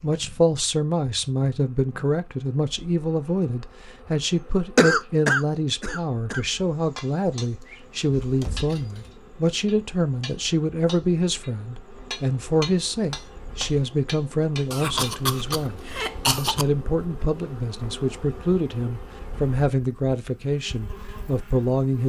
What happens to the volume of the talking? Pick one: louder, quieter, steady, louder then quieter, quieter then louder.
steady.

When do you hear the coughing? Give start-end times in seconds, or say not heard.
4.8-6.4, 14.7-16.6.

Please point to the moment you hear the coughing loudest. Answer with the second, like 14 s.
5 s.